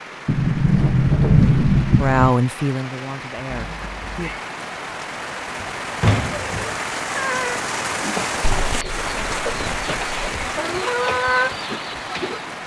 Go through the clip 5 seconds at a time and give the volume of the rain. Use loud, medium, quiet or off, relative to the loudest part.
medium, loud, loud.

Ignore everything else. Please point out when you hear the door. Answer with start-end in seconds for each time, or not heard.
0.2-2.3, 5.6-6.8, 8.4-10.6.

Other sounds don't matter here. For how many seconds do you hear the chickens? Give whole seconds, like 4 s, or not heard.
5 s.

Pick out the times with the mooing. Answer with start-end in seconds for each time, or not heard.
not heard.